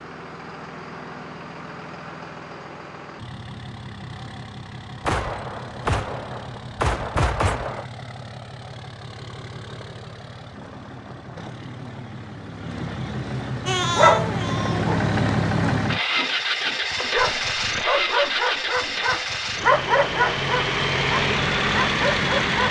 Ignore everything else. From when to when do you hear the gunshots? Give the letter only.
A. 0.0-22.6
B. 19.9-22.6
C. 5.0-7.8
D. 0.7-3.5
C.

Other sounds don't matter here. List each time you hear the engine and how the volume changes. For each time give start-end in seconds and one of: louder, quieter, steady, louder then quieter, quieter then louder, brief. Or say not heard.
0.0-22.6 louder.